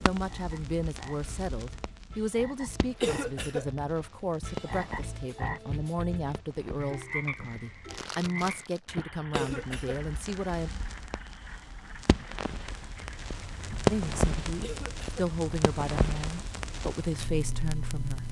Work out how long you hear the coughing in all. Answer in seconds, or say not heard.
2 s.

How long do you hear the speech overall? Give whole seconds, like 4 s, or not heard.
15 s.